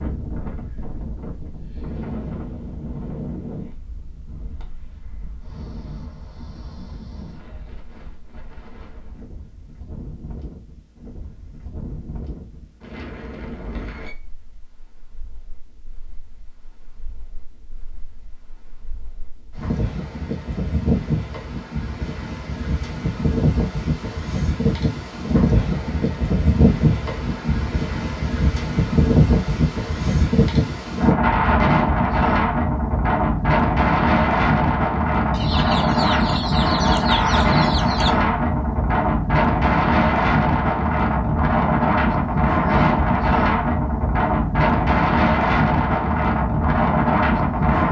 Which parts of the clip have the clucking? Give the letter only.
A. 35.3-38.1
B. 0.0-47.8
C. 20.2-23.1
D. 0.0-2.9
A.